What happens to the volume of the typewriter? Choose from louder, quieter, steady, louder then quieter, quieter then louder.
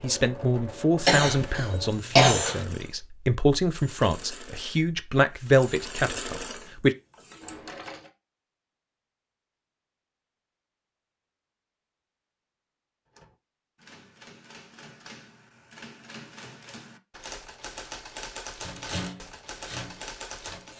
louder.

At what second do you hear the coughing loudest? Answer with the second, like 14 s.
2 s.